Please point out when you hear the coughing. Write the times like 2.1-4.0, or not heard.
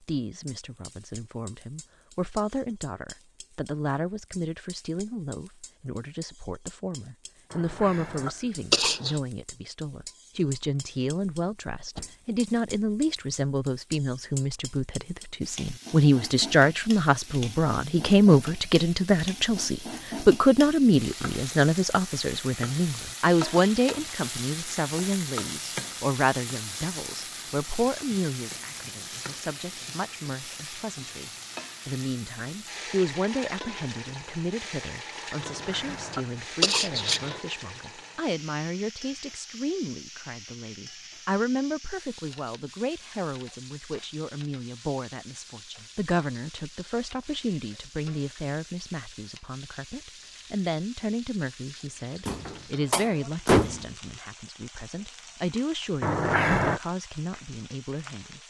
7.5-9.2, 35.5-37.4, 56.0-56.8.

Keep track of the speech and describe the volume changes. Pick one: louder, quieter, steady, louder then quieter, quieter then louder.
louder then quieter.